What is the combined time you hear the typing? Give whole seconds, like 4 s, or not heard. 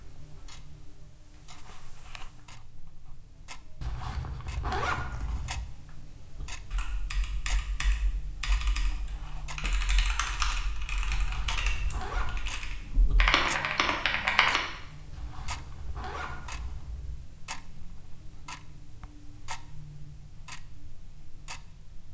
8 s.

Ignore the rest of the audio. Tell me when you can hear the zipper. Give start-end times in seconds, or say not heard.
3.8-5.7, 11.1-12.6, 15.1-17.1.